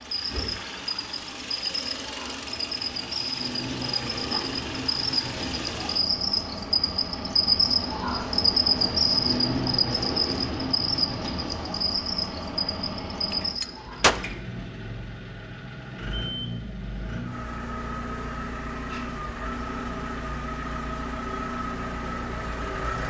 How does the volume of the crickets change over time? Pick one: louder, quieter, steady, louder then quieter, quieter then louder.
louder then quieter.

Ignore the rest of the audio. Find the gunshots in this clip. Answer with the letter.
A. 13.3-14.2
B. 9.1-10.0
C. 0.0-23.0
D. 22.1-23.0
A.